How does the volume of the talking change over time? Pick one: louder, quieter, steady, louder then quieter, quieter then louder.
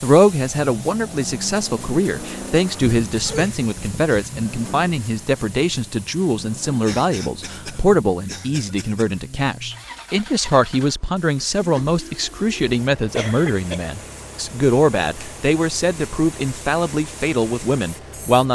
steady.